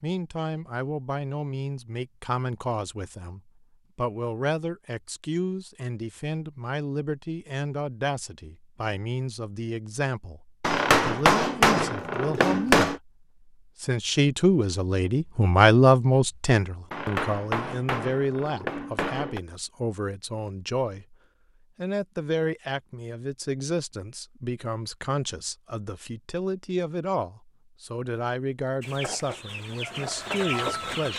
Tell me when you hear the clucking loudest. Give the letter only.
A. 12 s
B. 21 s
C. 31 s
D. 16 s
C.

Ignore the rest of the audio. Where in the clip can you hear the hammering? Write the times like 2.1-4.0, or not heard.
10.6-13.0, 16.9-19.4.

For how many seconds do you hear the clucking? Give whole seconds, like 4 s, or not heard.
2 s.